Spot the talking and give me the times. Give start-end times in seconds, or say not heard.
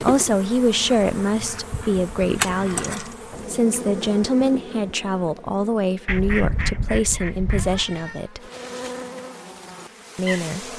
0.0-8.5, 10.2-10.7.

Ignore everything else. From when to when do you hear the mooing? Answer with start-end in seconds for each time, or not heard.
not heard.